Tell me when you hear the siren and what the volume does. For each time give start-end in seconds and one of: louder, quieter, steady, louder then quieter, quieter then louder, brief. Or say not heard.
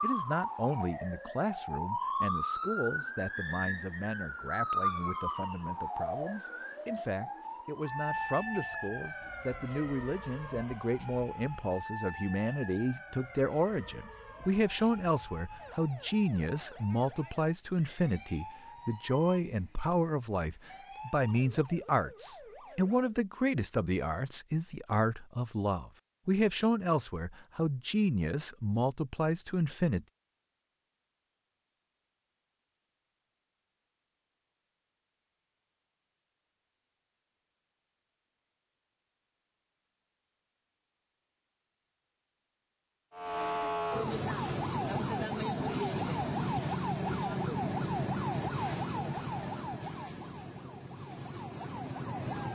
0.0-23.2 quieter
43.1-52.4 quieter.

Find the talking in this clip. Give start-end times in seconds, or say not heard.
0.0-30.1.